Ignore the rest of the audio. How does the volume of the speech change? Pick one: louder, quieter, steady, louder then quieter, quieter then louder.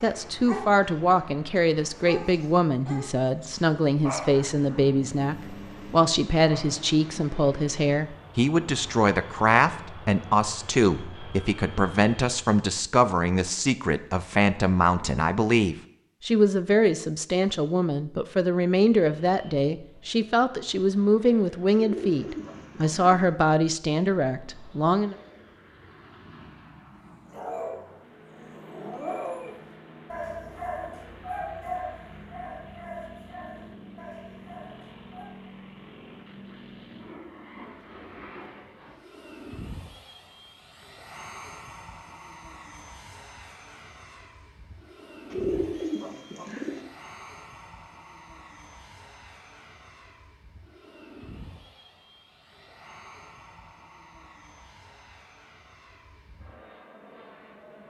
steady.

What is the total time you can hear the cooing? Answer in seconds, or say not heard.
3 s.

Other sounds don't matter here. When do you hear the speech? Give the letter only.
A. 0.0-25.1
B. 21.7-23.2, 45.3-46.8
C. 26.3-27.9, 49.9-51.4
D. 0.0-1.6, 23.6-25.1
A.